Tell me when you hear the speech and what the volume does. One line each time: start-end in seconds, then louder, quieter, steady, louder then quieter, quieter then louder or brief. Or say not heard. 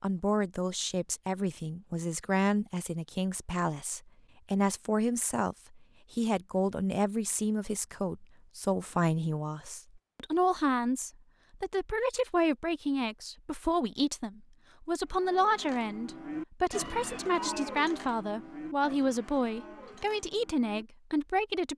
0.0-21.7 steady.